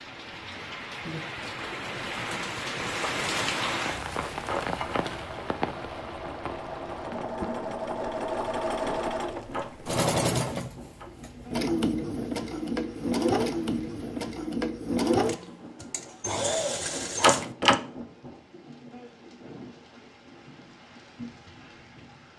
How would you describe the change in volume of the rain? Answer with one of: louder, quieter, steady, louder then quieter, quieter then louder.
quieter.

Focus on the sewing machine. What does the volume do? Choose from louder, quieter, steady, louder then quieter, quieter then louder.
louder.